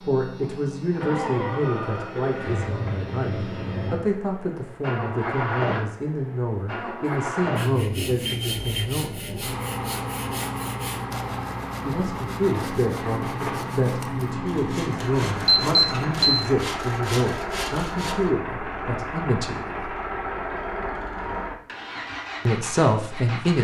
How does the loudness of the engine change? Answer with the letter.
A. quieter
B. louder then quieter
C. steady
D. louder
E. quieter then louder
C.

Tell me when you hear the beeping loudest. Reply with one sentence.
The volume of the beeping peaks at 16 seconds.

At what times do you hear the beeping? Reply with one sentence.
You can hear the beeping from 8.3 to 8.9 s and from 15.2 to 16.4 s.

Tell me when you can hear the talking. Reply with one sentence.
The talking can be heard from 0.0 to 9.2 s, from 11.8 to 19.9 s and from 22.4 to 23.5 s.